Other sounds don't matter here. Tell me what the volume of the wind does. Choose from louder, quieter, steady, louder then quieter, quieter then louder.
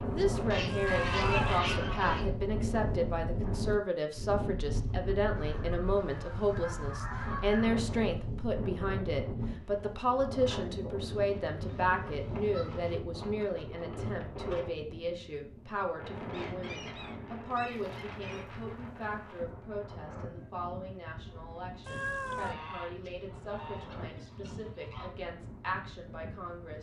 quieter.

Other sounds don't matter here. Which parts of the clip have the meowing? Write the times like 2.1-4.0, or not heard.
0.7-1.6, 21.9-22.6.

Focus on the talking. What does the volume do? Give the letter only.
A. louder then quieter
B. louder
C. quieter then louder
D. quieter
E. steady
D.